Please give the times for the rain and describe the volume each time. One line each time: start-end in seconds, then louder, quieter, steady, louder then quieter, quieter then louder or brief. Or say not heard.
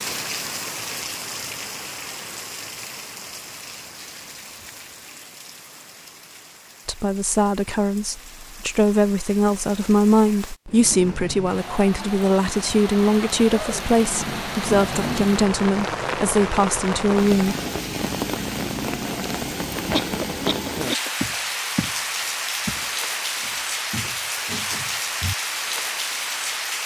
0.0-26.8 quieter then louder.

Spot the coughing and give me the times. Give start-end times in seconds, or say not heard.
19.9-21.1.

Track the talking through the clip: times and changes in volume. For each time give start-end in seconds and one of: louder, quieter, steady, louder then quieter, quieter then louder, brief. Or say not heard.
6.8-17.6 steady.